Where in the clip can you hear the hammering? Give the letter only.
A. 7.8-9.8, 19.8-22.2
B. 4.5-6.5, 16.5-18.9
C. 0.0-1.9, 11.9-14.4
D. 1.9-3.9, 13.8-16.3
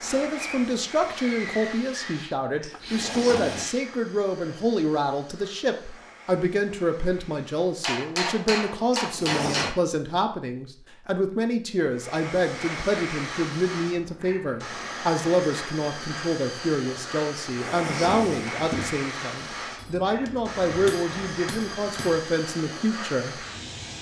A.